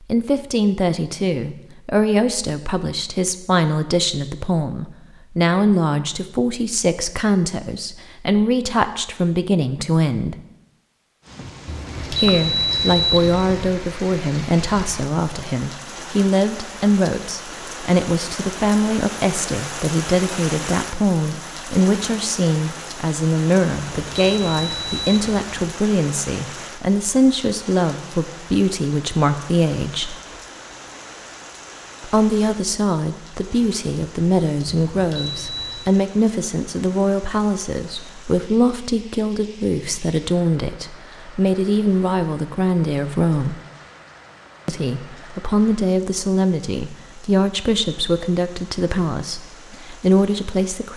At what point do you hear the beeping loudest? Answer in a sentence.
The volume of the beeping peaks at 13 seconds.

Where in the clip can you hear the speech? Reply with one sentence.
You can hear the speech from 0.1 to 10.3 s, from 12.1 to 30.1 s, from 32.0 to 43.5 s and from 44.6 to 50.9 s.